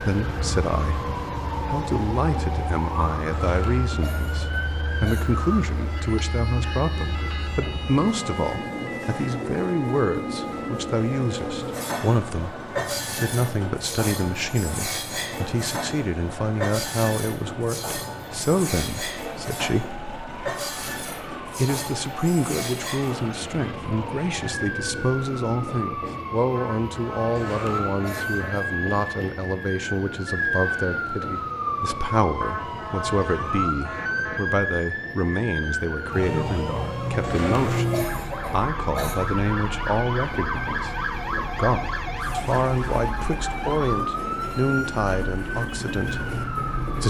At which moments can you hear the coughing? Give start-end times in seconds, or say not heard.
3.3-5.2, 27.4-28.8, 37.2-39.1.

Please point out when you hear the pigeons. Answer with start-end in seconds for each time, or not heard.
not heard.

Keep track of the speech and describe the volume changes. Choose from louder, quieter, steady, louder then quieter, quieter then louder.
steady.